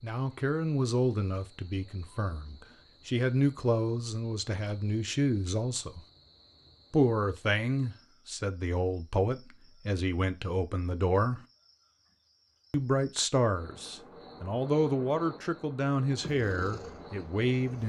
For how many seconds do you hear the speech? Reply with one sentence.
The speech can be heard for 16 seconds in total.